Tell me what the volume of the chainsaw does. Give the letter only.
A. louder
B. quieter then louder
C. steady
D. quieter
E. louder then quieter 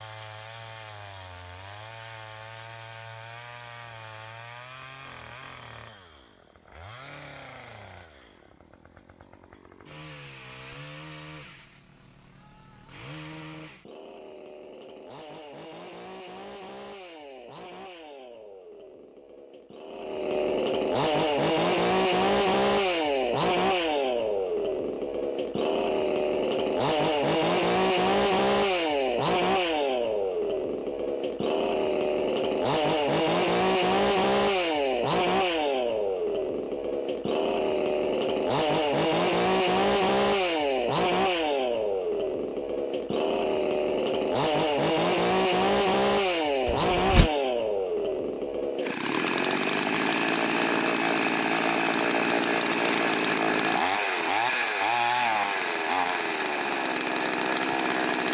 A.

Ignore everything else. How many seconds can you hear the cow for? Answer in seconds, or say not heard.
not heard.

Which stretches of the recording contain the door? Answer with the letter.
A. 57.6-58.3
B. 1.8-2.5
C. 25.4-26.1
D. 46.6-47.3
D.